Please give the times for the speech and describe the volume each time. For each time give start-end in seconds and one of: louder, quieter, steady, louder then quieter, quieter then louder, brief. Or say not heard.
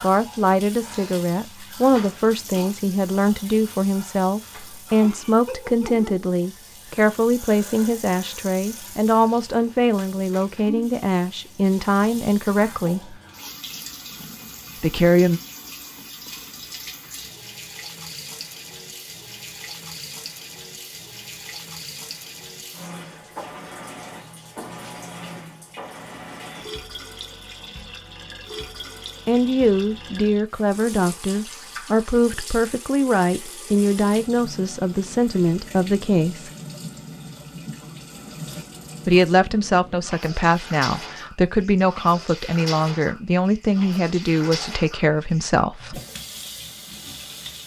0.0-13.2 steady
14.8-15.4 brief
29.2-36.5 steady
39.0-46.0 steady.